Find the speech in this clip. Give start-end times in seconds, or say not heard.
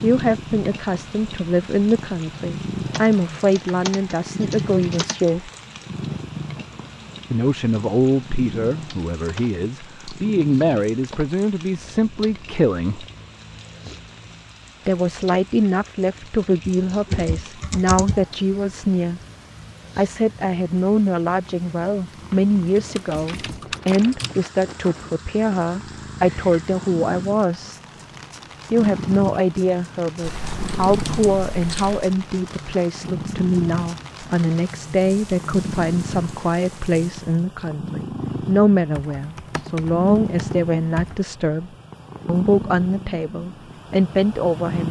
0.0-5.5, 7.3-13.1, 14.8-19.2, 19.9-27.8, 28.7-44.8.